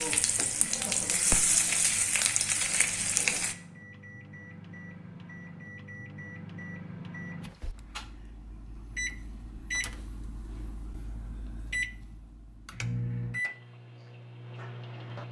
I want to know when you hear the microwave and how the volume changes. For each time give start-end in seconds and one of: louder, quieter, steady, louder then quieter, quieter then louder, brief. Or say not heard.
0.0-15.2 louder.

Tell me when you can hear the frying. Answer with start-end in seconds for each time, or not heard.
0.0-3.5.